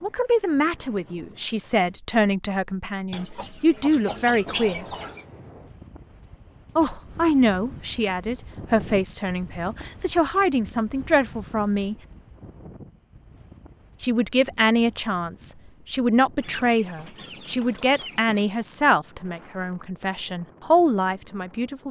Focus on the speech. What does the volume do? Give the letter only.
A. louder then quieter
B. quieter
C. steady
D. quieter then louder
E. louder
C.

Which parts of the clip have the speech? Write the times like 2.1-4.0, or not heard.
0.0-4.8, 6.8-11.9, 14.0-21.8.